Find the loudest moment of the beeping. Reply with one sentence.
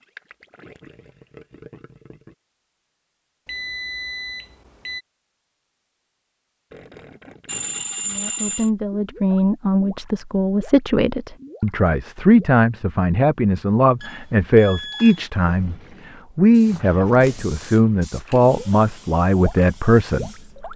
The loudest moment of the beeping is at 8 seconds.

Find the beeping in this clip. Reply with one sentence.
The beeping can be heard from 3.5 to 5.0 s, from 7.5 to 8.7 s and from 14.0 to 15.3 s.